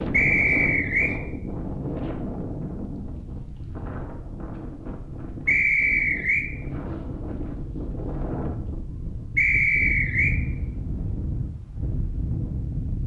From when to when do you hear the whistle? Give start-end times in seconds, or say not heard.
0.1-1.1, 5.5-6.5, 9.3-10.3.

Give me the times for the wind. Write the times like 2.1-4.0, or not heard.
0.0-13.0.